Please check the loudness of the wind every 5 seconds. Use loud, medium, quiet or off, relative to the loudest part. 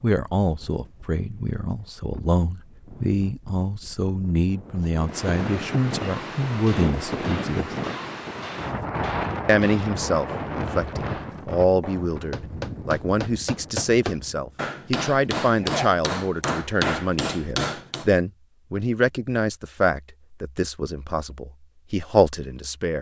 quiet, loud, medium, off, off.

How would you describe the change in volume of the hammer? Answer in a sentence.
The volume of the hammer goes up.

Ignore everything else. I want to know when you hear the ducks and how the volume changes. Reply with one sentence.
You can't hear the ducks here.